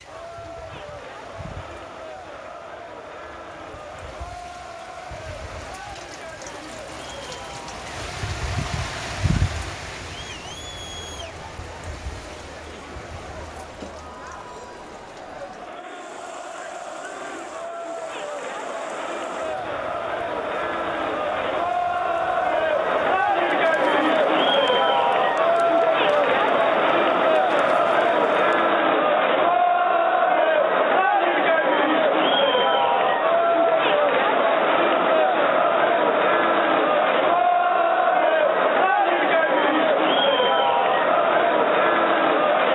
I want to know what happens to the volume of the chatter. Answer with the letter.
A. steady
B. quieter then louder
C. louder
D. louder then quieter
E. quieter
C.